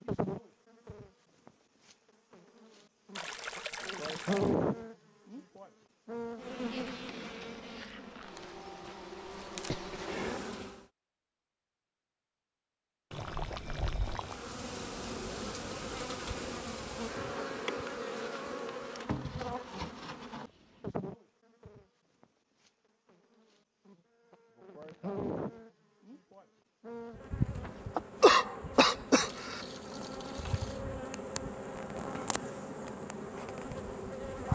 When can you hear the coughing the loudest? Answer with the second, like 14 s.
28 s.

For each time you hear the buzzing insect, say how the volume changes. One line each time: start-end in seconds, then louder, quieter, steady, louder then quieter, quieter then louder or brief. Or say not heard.
0.0-10.8 louder then quieter
14.2-34.5 steady.